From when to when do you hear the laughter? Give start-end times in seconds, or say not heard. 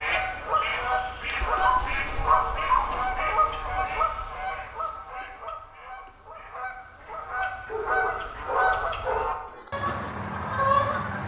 not heard.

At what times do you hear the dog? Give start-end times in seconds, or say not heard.
1.6-3.3, 7.7-9.7.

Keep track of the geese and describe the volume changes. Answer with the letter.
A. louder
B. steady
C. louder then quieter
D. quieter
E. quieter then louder
E.